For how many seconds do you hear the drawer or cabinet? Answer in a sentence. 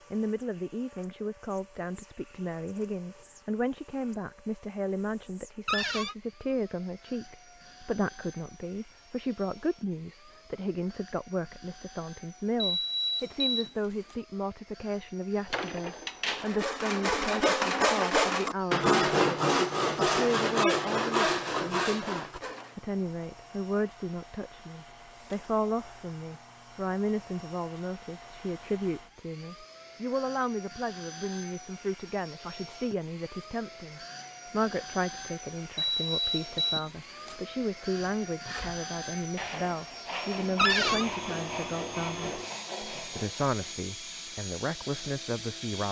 You can hear the drawer or cabinet for 2 seconds altogether.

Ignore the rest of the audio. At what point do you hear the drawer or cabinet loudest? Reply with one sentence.
The loudest moment of the drawer or cabinet is at 41 seconds.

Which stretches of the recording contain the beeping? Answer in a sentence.
The beeping can be heard from 12.6 to 14.2 s and from 35.8 to 37.4 s.